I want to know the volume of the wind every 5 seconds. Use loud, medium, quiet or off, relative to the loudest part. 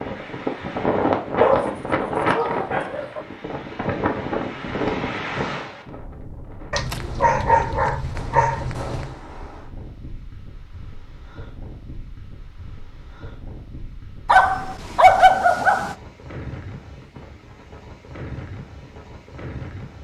loud, medium, quiet, quiet.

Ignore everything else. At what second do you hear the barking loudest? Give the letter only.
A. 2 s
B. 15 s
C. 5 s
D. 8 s
B.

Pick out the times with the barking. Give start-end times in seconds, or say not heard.
1.4-3.2, 6.7-9.1, 14.2-15.9.